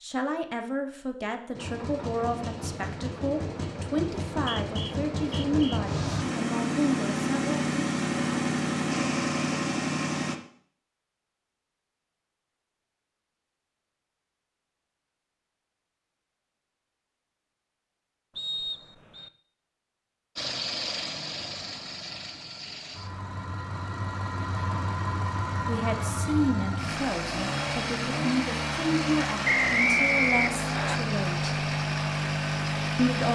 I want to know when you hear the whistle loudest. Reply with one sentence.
The volume of the whistle peaks at 30 seconds.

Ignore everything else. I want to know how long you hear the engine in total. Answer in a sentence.
The engine can be heard for 22 seconds in total.